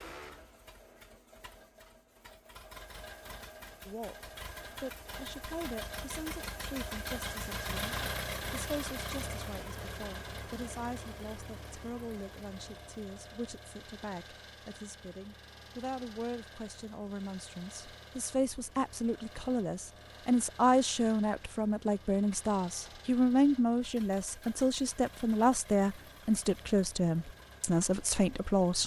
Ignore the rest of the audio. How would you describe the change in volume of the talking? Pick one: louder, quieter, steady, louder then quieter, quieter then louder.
louder.